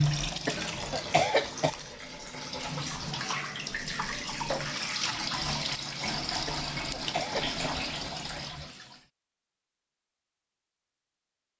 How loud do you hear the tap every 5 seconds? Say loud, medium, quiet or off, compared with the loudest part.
loud, loud, off.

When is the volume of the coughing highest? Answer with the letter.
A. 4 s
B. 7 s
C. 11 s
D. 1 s
D.